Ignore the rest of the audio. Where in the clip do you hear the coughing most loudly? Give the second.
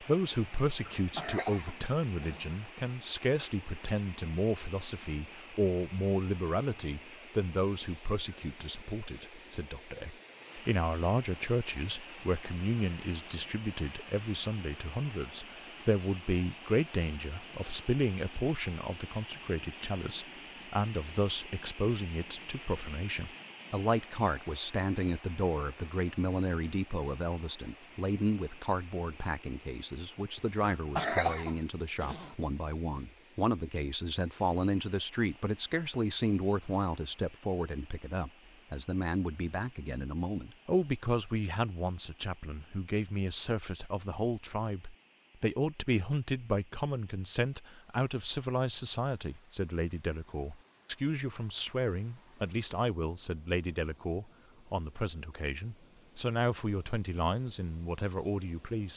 31 s.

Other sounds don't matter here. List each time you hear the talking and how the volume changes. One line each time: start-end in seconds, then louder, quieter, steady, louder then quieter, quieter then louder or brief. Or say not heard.
0.0-58.9 steady.